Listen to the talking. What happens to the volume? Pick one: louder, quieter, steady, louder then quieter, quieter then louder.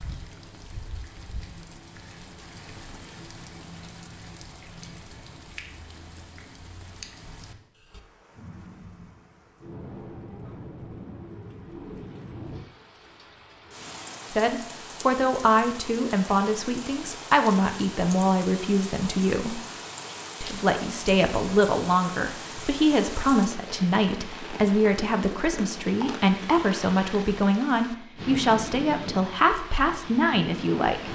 steady.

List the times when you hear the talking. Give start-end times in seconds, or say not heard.
14.3-19.6, 20.4-31.1.